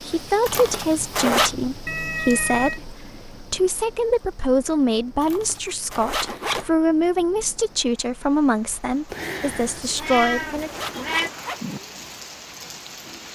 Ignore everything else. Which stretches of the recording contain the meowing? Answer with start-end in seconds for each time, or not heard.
1.9-2.8, 9.1-11.3.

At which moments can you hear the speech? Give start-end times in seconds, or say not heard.
0.0-10.8.